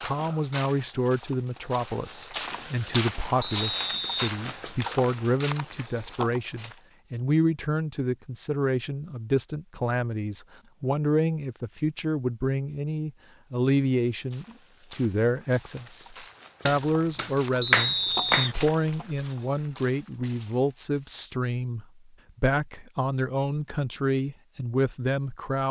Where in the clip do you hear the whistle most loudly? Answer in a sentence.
The volume of the whistle peaks at 18 seconds.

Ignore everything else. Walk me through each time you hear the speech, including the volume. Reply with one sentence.
You can hear the speech from 0.0 to 25.6 s, at a steady volume.